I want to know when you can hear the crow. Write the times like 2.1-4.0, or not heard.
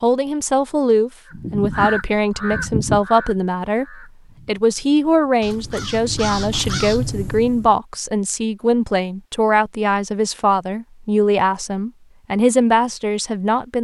1.2-7.8.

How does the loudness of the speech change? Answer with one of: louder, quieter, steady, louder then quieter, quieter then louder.
steady.